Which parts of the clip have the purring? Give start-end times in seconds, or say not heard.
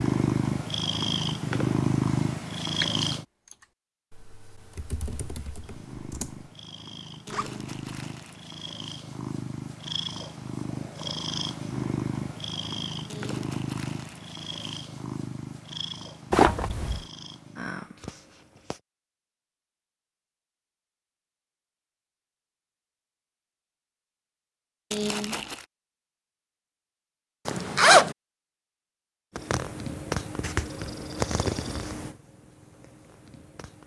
0.0-3.2, 5.6-18.8, 29.4-33.8.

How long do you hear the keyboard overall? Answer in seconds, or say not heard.
4 s.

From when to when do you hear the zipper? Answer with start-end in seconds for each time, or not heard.
7.3-8.0, 16.3-17.0, 27.4-28.1.